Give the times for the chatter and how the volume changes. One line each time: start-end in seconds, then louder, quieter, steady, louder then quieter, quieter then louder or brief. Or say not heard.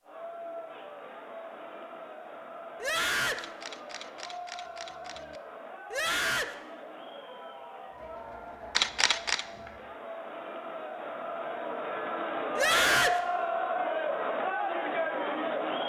0.0-15.8 louder.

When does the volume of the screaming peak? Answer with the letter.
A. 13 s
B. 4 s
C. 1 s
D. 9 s
A.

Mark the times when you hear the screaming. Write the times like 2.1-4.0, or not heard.
2.8-3.5, 5.9-6.5, 12.6-13.2.